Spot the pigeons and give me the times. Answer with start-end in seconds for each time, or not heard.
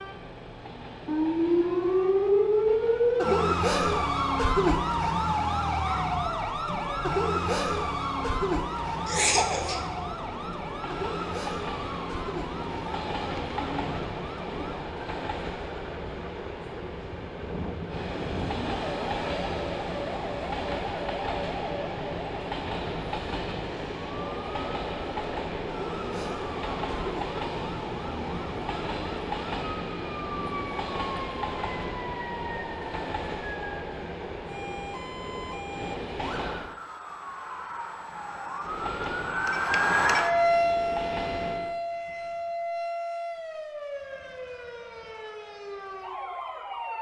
13.2-14.8.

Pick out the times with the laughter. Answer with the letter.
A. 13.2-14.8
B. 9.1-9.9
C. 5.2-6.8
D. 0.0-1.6
B.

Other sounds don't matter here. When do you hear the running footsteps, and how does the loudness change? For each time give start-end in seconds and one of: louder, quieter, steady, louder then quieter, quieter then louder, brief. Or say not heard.
not heard.